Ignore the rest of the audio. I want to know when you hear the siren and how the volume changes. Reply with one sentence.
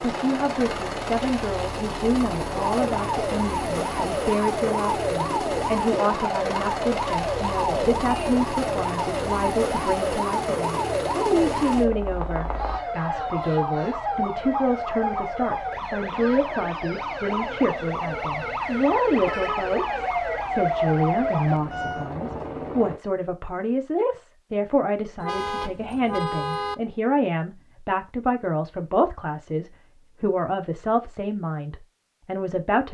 The siren can be heard from 2.6 to 22.1 s, at a steady volume.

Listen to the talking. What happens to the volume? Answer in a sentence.
The loudness of the talking stays about the same.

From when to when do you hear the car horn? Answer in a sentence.
You can hear the car horn from 7.8 to 8.2 s, from 18.6 to 19.8 s and from 25.2 to 26.8 s.